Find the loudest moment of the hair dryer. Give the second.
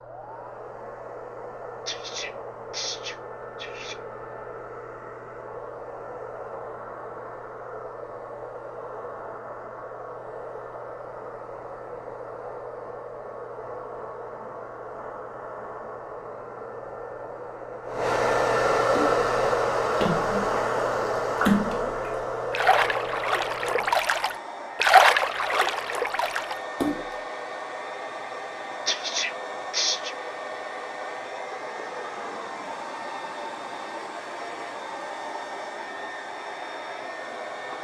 19 s.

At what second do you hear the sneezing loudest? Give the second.
30 s.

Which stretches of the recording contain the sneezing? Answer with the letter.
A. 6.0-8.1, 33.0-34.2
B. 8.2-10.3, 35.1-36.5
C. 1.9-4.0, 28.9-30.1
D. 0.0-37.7
C.